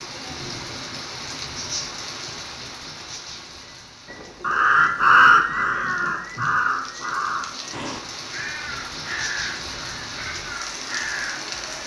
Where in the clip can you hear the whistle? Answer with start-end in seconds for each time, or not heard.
not heard.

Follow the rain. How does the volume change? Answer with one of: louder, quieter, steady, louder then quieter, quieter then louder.
quieter then louder.